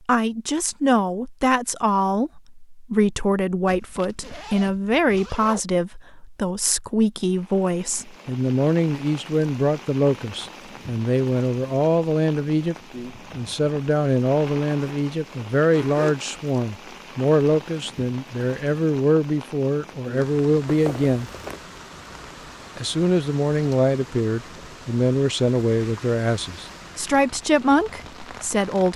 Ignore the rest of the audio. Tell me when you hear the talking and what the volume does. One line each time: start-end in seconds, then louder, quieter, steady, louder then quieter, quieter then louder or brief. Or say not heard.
0.1-12.8 steady
13.3-21.3 steady
22.8-28.9 steady.